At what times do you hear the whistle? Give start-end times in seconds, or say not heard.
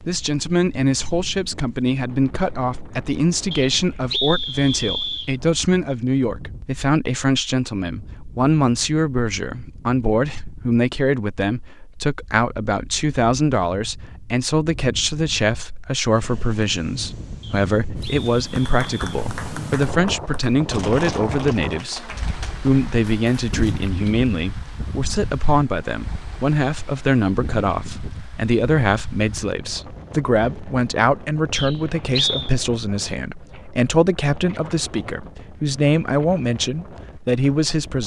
3.5-5.3, 17.4-19.0, 31.6-32.5.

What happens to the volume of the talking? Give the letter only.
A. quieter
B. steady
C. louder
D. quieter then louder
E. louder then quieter
B.